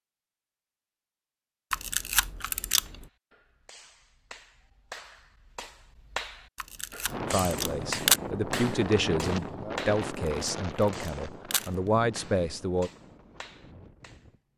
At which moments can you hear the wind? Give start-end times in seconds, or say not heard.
7.0-14.5.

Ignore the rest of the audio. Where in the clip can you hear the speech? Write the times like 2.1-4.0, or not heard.
7.3-12.9.